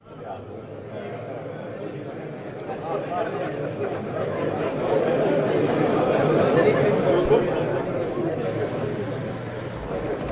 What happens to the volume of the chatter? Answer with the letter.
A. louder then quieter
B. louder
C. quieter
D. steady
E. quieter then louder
A.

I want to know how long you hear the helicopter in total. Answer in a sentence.
You can hear the helicopter for 2 seconds altogether.